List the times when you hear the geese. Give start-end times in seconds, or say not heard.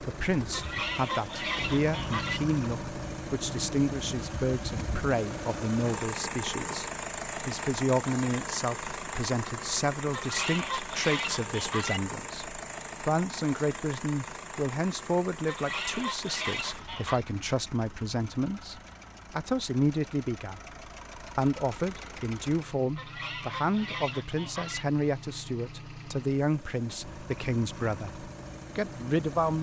0.5-2.4, 10.1-12.0, 15.4-17.2, 22.9-24.9.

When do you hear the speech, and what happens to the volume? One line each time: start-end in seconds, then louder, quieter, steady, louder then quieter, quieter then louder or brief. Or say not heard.
0.0-29.5 steady.